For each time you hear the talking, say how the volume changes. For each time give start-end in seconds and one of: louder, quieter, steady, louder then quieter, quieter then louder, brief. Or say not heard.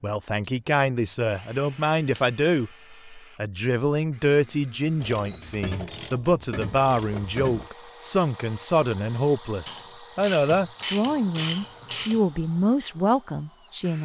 0.0-14.0 steady.